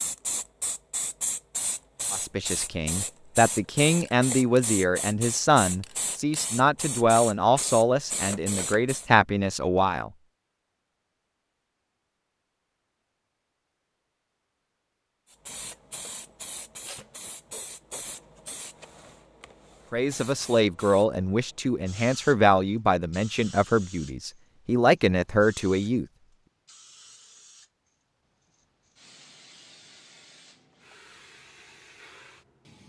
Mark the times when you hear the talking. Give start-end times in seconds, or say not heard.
2.1-10.1, 19.9-26.1.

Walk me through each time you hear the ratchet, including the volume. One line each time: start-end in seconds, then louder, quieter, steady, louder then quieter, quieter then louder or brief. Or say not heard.
not heard.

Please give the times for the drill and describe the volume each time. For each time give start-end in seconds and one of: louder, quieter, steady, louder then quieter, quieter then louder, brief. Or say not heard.
not heard.